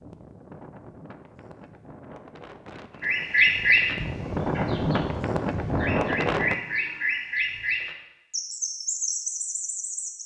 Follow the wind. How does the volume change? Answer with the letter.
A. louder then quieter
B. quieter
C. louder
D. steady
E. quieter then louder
C.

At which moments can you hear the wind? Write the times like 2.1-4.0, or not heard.
0.0-6.5.